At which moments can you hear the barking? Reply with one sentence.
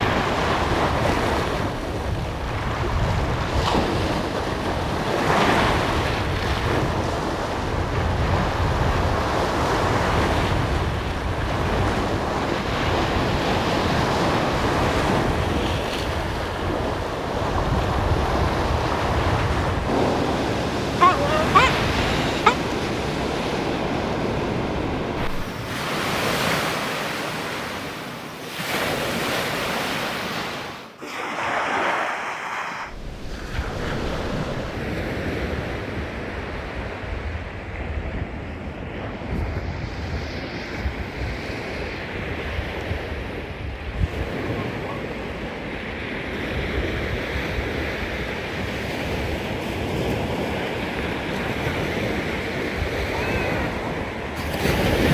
You can hear the barking from 21.0 to 22.6 s.